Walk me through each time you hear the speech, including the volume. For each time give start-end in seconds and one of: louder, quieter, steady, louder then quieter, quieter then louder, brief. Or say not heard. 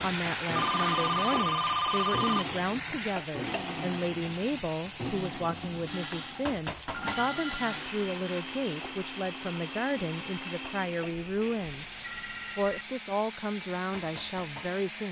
0.0-15.0 steady.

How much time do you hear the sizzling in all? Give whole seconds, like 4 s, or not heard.
15 s.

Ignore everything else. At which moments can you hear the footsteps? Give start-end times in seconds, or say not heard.
not heard.